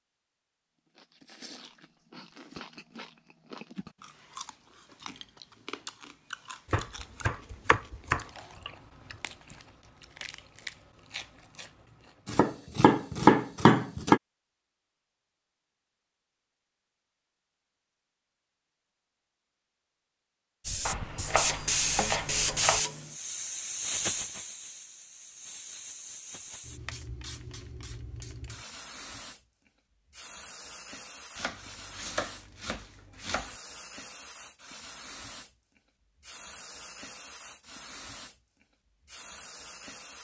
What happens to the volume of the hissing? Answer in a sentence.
The loudness of the hissing goes down.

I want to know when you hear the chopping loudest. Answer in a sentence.
The loudest moment of the chopping is at 13 seconds.